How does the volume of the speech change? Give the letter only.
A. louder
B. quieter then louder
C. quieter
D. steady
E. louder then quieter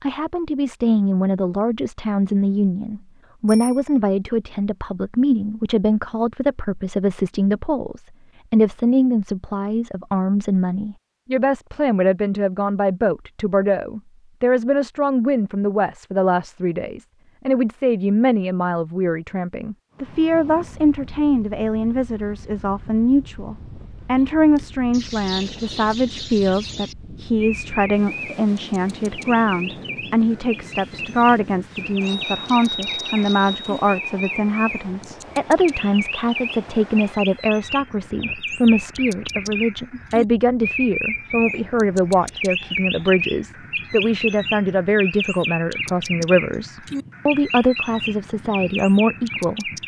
D.